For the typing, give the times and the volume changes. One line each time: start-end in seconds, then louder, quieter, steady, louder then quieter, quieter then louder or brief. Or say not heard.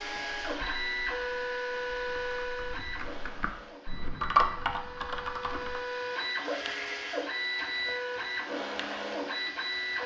0.0-10.0 louder then quieter.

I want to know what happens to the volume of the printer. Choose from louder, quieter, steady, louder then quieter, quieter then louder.
quieter then louder.